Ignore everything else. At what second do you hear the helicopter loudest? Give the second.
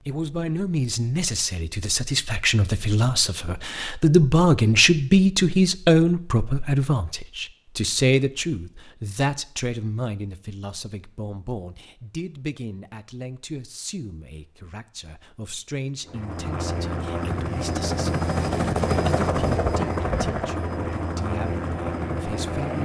19 s.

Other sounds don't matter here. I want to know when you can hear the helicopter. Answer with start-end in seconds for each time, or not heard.
16.1-22.8.